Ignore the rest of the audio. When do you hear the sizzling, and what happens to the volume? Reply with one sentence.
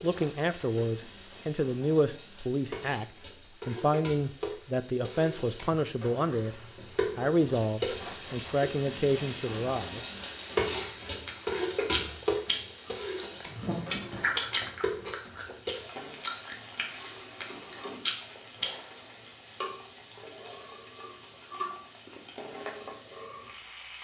The sizzling can be heard from 0.0 to 23.9 s, getting louder then quieter.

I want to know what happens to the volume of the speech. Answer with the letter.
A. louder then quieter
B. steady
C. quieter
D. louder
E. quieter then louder
B.